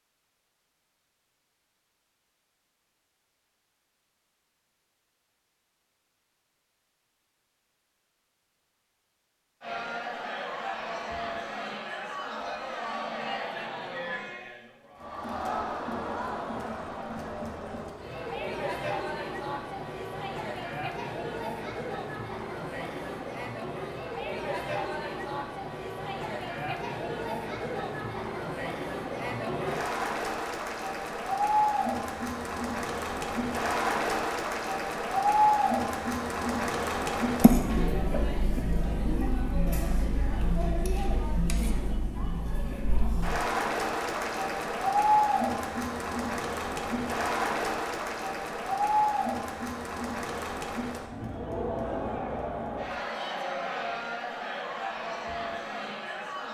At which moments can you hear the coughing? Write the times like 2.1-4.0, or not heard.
37.4-38.6.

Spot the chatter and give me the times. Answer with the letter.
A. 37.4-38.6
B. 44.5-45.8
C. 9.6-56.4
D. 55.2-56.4
C.